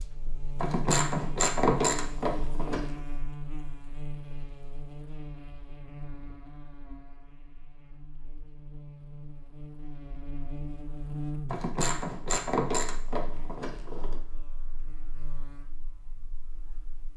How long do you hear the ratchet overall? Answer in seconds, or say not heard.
5 s.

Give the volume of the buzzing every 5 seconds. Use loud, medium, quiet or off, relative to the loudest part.
loud, medium, loud, quiet.